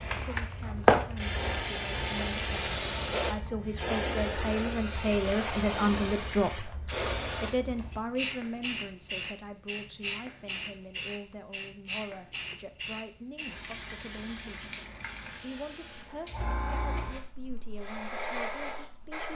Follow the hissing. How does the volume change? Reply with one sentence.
The volume of the hissing goes down.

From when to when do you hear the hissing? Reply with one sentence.
You can hear the hissing from 0.0 to 19.3 s.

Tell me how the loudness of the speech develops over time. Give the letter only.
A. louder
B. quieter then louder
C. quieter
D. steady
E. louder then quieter
E.